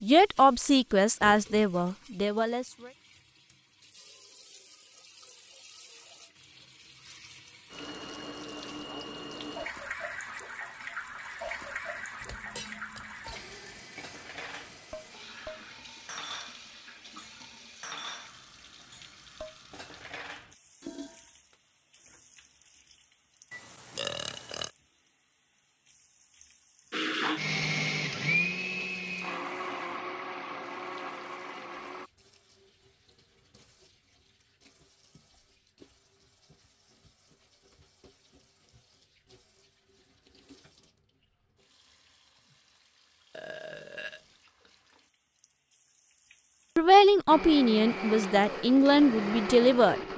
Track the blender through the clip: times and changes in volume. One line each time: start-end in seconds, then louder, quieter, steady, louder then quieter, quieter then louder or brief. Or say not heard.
26.9-32.1 quieter
47.2-50.1 brief.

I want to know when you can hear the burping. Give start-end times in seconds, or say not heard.
1.2-1.7, 23.5-24.7, 43.3-44.2.